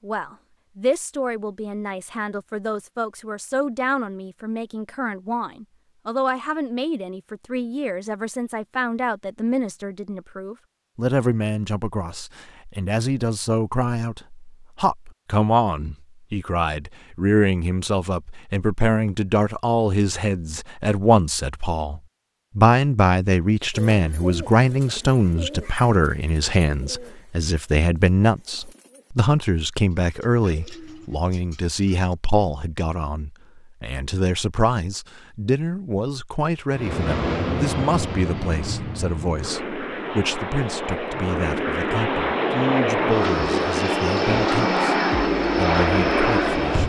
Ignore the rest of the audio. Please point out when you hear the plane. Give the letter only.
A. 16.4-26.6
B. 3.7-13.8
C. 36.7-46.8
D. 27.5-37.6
C.